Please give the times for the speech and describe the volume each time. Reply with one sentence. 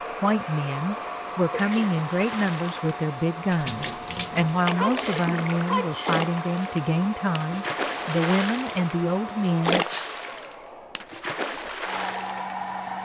You can hear the speech from 0.2 to 9.8 s, at a steady volume.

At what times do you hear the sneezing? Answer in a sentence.
You can hear the sneezing from 1.5 to 1.9 s, from 4.8 to 6.2 s and from 9.8 to 10.2 s.